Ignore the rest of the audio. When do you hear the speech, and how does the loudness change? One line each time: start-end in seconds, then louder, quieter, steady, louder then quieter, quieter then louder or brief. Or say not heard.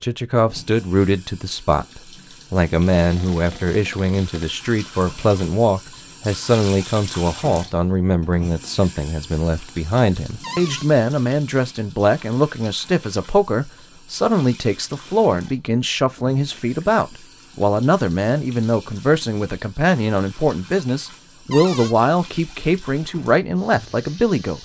0.0-24.5 steady.